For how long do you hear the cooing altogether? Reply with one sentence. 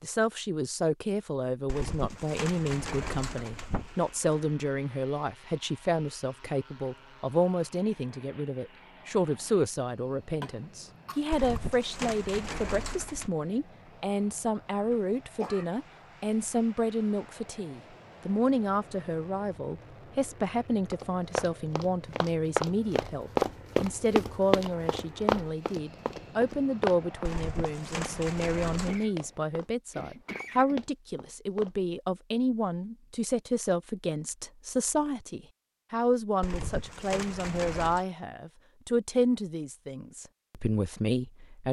The cooing can be heard for 8 seconds in total.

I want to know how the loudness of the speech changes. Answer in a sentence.
The volume of the speech stays about the same.